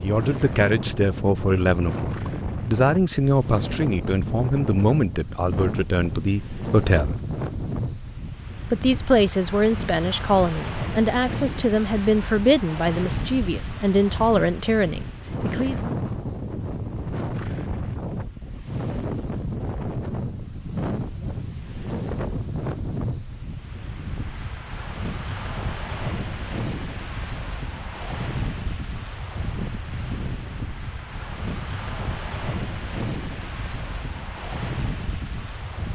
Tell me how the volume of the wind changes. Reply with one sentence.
The volume of the wind stays about the same.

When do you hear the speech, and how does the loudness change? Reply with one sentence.
You can hear the speech from 0.0 to 7.2 s, at a steady volume; and from 8.7 to 15.8 s, at a steady volume.